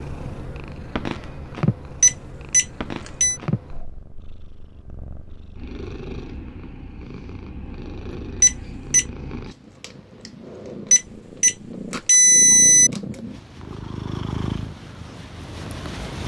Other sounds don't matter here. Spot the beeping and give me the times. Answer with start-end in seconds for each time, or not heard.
2.0-3.4, 8.4-9.1, 10.9-12.9.